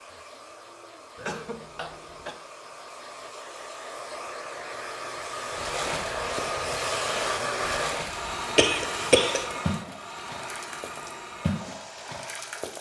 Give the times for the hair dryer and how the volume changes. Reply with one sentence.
The hair dryer can be heard from 0.0 to 12.7 s, getting louder then quieter.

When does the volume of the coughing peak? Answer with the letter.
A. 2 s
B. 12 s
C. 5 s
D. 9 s
D.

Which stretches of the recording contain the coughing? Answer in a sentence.
The coughing can be heard from 1.1 to 2.4 s and from 8.6 to 9.4 s.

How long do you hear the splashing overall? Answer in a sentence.
You can hear the splashing for 7 seconds altogether.